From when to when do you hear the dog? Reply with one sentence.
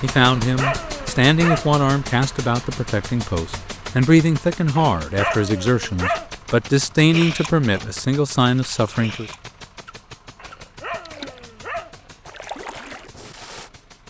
You can hear the dog from 0.4 to 1.8 s, from 4.8 to 6.3 s and from 10.3 to 12.3 s.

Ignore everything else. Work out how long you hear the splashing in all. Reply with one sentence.
The splashing can be heard for 6 seconds in total.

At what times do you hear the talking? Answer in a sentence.
The talking can be heard from 0.0 to 9.3 s.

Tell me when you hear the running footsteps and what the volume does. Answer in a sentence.
The running footsteps can't be heard in this clip.